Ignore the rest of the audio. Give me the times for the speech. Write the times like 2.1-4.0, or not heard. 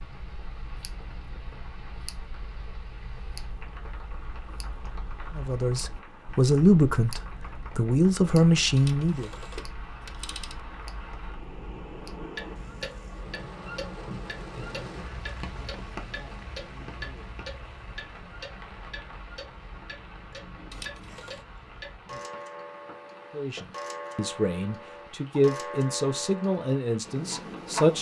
5.3-9.3, 23.4-27.9.